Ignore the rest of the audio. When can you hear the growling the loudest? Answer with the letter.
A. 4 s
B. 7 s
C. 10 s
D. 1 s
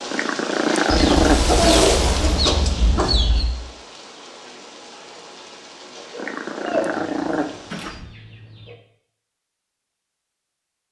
D.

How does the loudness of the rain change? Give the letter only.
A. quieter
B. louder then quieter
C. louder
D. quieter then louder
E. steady
A.